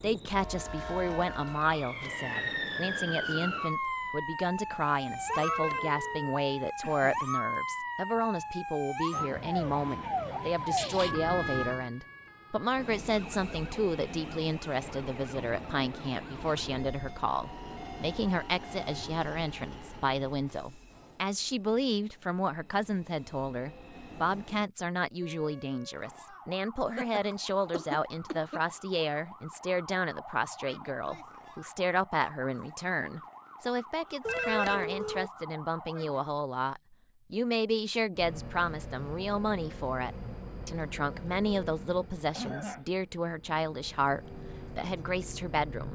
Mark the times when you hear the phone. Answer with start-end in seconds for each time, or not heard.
5.2-6.3, 34.2-35.3.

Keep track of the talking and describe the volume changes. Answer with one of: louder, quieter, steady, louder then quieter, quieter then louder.
steady.